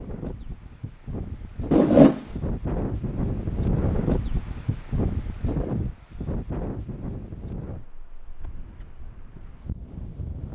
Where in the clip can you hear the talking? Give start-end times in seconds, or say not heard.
not heard.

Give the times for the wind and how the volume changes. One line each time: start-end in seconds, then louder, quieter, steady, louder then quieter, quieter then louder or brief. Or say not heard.
0.0-10.5 louder then quieter.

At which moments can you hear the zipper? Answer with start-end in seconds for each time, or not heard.
1.7-2.2.